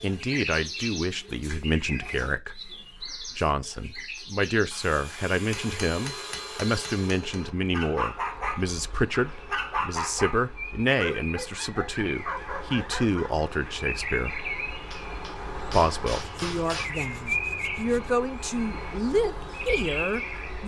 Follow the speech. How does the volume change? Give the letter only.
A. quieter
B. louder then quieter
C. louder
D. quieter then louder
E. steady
E.